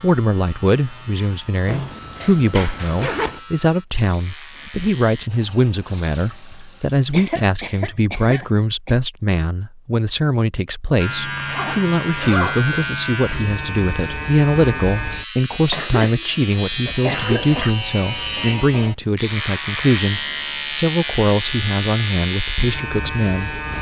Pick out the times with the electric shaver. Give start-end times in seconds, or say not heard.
0.0-5.3, 10.9-23.7.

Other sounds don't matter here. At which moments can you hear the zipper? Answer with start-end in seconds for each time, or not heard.
1.6-3.4, 11.3-12.8, 16.9-17.6.